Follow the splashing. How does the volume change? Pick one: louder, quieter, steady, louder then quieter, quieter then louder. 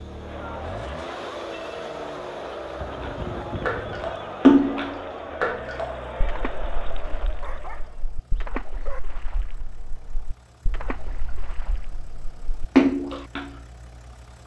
quieter then louder.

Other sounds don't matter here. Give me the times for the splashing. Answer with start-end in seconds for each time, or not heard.
3.0-13.5.